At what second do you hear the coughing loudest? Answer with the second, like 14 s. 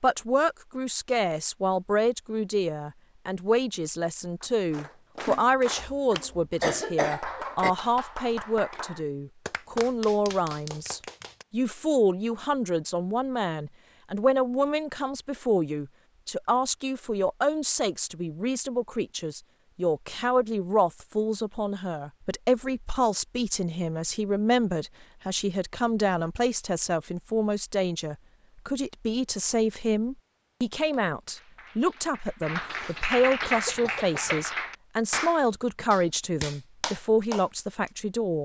7 s.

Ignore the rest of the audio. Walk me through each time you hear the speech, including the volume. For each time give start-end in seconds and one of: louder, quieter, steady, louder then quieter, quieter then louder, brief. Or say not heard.
0.0-38.4 steady.